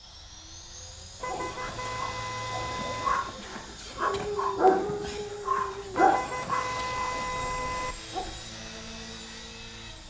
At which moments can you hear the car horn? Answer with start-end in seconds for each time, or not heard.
1.2-3.2, 5.9-8.0.